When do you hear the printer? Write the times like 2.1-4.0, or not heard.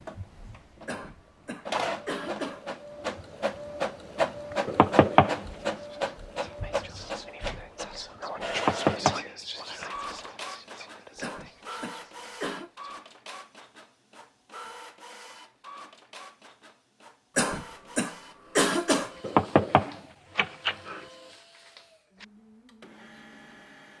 0.0-23.9.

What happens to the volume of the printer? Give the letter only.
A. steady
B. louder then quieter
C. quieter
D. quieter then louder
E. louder
C.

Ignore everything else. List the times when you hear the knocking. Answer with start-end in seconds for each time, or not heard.
4.7-5.4, 8.6-9.2, 19.2-21.0.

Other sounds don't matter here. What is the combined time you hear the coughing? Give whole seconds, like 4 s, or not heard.
5 s.